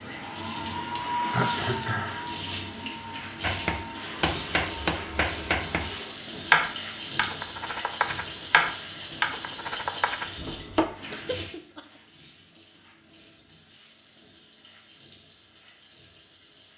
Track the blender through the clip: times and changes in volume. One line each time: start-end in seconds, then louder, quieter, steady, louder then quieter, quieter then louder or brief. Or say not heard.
0.0-6.1 quieter.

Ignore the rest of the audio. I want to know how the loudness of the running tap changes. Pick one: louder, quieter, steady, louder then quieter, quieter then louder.
quieter.